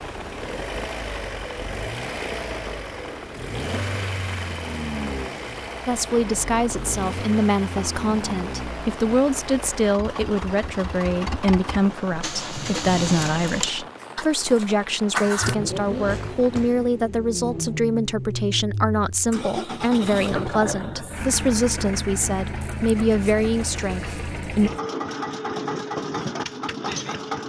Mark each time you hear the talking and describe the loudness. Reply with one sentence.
The talking can be heard from 5.8 to 24.7 s, at a steady volume.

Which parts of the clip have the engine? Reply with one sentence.
You can hear the engine from 0.0 to 27.4 s.